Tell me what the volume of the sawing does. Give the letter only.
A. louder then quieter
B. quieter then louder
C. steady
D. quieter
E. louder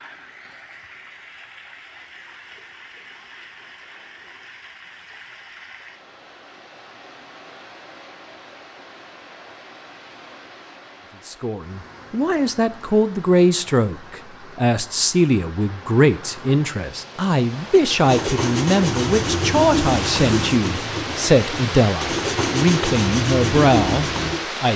B.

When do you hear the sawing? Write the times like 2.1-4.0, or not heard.
18.0-24.4.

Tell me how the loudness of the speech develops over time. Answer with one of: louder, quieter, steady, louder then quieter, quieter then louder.
steady.